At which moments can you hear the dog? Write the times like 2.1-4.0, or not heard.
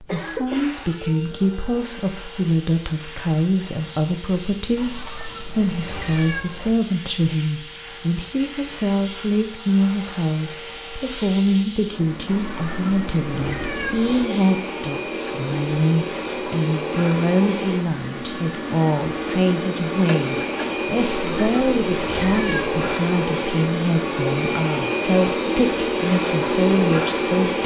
not heard.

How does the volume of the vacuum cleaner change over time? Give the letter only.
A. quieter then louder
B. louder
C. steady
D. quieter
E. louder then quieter
B.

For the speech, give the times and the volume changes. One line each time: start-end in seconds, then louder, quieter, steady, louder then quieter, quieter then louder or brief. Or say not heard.
0.0-27.6 steady.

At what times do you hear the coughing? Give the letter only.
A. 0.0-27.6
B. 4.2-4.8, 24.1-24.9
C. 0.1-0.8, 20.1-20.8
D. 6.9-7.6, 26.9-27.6
C.